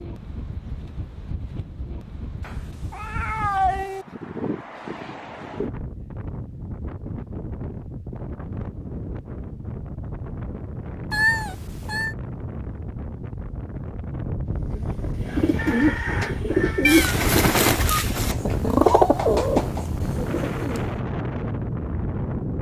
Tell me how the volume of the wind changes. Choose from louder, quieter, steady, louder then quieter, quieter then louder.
louder.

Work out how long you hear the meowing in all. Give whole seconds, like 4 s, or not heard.
4 s.